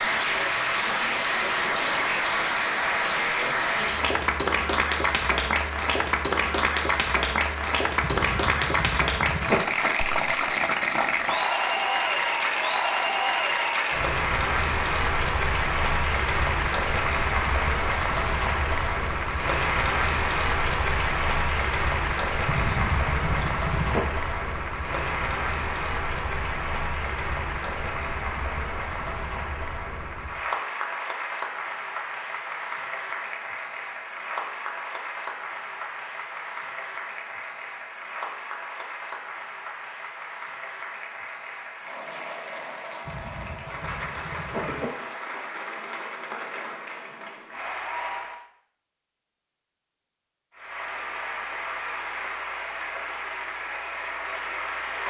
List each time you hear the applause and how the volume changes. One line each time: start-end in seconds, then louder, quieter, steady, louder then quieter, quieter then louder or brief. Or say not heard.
0.0-48.4 quieter
50.5-55.0 steady.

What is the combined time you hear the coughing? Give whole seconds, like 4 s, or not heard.
5 s.